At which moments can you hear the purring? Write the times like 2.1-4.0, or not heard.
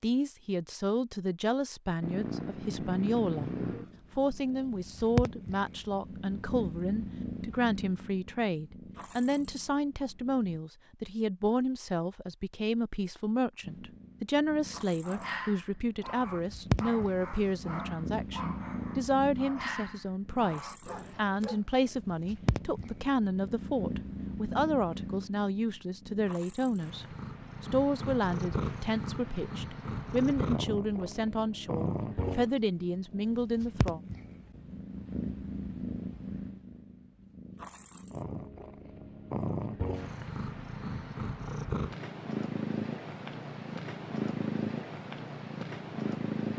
2.0-10.6, 13.6-46.5.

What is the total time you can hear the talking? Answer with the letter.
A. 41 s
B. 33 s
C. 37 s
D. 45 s
B.